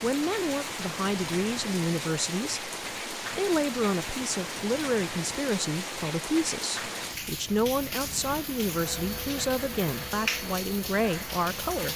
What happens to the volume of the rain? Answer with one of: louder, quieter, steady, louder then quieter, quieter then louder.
steady.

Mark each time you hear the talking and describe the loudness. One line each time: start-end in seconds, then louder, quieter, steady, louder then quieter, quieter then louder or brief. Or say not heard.
0.0-11.9 steady.